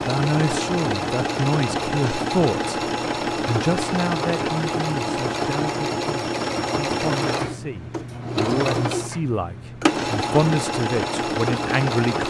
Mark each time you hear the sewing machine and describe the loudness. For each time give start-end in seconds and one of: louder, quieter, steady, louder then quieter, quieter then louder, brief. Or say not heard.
0.0-12.2 steady.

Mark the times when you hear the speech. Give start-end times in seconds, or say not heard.
0.1-2.8, 3.4-12.2.